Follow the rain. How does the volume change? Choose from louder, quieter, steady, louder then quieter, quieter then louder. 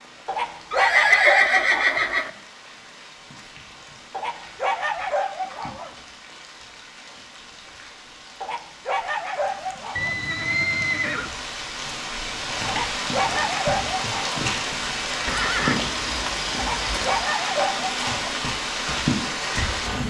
louder.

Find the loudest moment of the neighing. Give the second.
1 s.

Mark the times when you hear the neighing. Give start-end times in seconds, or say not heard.
0.7-2.3, 9.9-11.3, 15.2-17.2.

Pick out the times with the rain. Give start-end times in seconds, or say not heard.
0.0-20.0.